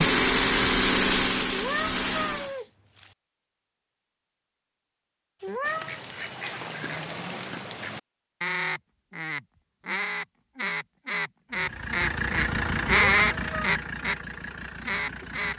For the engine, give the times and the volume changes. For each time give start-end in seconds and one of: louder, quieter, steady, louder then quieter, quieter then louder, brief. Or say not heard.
0.0-2.5 brief
11.5-15.5 quieter.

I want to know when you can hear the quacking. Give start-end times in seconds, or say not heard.
5.6-14.2, 14.8-15.5.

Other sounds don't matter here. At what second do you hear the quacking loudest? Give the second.
13 s.